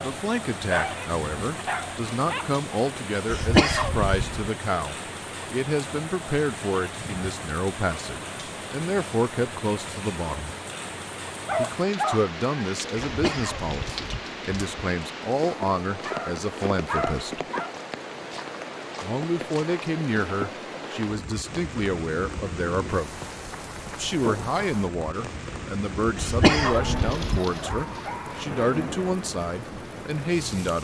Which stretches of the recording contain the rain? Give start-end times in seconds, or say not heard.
0.0-30.7.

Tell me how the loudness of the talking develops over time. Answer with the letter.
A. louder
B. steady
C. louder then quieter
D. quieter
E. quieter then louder
B.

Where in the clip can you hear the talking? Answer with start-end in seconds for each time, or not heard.
0.0-10.6, 11.6-17.4, 19.0-23.2, 23.9-30.7.